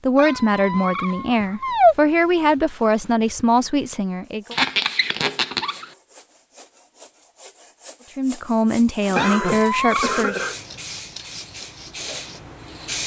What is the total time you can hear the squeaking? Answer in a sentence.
The squeaking can be heard for 4 seconds in total.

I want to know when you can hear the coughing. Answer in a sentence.
You can hear the coughing from 9.2 to 10.6 s.